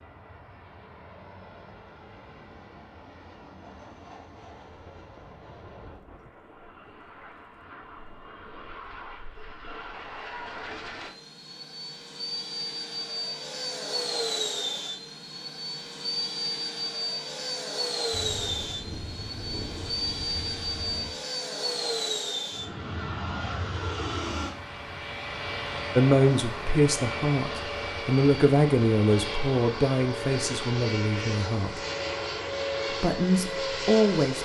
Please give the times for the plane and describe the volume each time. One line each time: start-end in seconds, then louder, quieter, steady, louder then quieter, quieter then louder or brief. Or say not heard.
0.0-34.4 louder.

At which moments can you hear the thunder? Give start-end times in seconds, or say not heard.
5.0-6.3, 18.1-21.2.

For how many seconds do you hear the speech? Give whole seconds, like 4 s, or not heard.
7 s.